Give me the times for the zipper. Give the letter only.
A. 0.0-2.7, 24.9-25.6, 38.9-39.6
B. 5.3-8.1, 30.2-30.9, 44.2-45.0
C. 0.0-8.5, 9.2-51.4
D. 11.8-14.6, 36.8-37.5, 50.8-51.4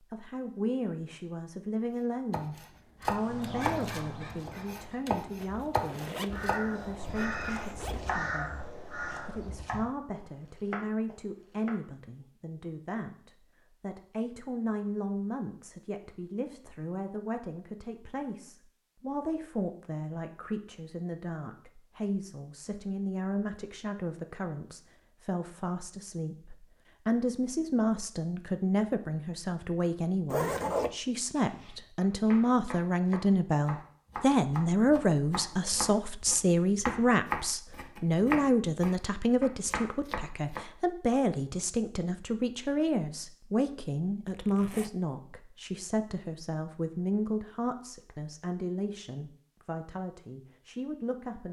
B.